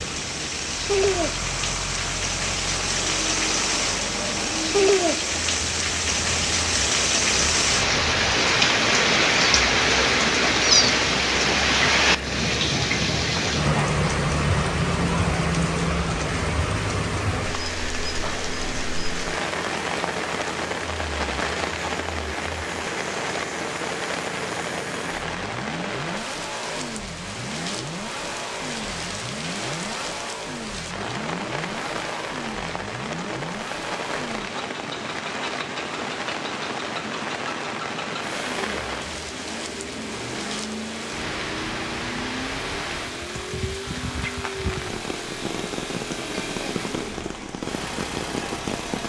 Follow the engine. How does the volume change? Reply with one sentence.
The volume of the engine stays about the same.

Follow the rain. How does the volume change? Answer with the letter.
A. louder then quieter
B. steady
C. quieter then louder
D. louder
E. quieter
E.